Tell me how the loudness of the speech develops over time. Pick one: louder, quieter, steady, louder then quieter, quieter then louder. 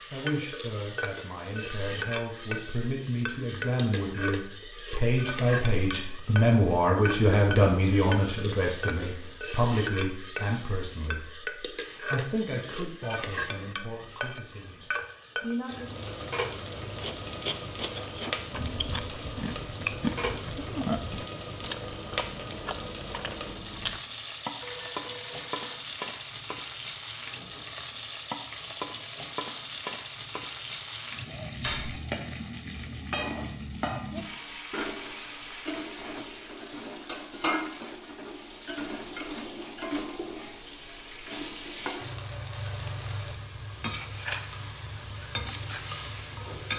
louder then quieter.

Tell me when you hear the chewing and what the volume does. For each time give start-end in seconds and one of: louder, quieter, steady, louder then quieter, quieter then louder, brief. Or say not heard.
16.9-24.0 louder then quieter.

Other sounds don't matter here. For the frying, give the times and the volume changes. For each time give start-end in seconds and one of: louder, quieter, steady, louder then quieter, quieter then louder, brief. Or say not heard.
0.0-46.7 steady.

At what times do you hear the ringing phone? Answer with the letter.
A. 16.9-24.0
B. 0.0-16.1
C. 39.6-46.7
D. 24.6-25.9
D.